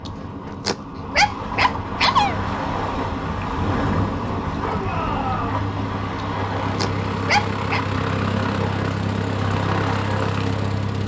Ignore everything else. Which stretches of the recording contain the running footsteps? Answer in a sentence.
You can't hear the running footsteps here.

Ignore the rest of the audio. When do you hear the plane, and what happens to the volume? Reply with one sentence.
The plane can be heard from 2.1 to 11.0 s, getting louder.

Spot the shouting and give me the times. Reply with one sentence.
The shouting can be heard from 4.5 to 5.6 s.